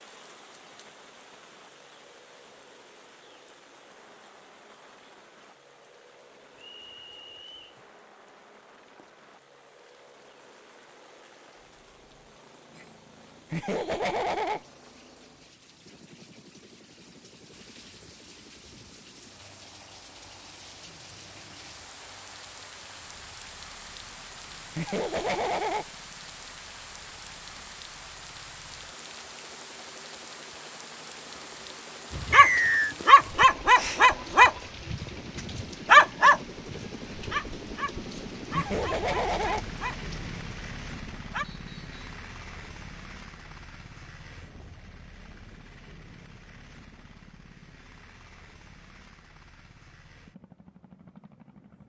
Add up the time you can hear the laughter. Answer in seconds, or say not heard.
3 s.